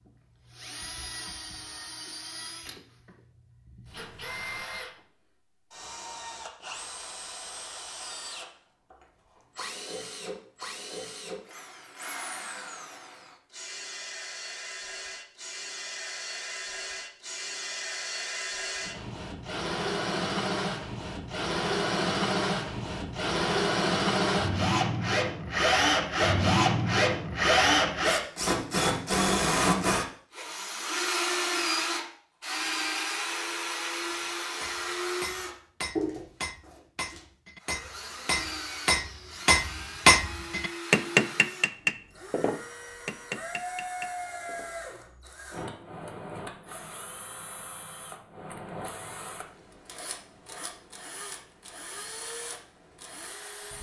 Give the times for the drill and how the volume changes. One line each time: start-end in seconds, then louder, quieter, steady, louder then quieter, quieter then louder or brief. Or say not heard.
0.0-53.7 louder then quieter.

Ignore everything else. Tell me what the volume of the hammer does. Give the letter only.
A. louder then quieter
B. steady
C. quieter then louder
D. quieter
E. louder
A.